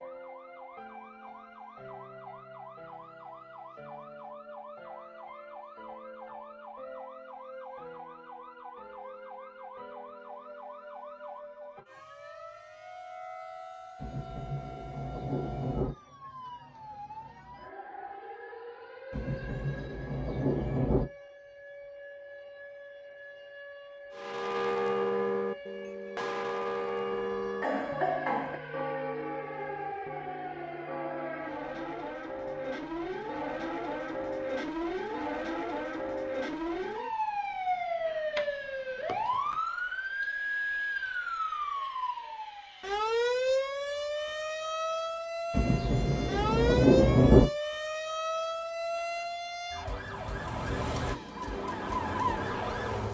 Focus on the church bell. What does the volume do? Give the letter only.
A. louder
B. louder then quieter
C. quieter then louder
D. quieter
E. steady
D.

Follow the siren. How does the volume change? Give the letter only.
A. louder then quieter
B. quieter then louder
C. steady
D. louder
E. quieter
D.